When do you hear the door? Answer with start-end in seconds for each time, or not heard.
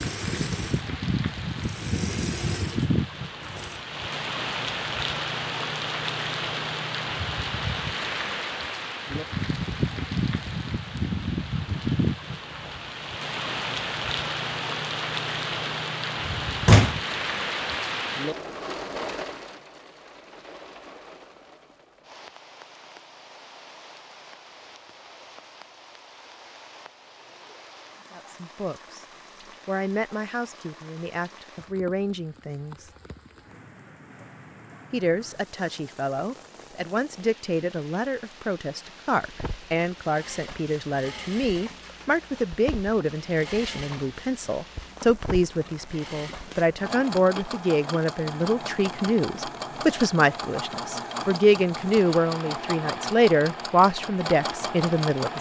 16.2-16.9.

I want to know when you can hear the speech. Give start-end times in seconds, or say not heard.
28.1-29.1, 29.6-32.9, 34.9-55.3.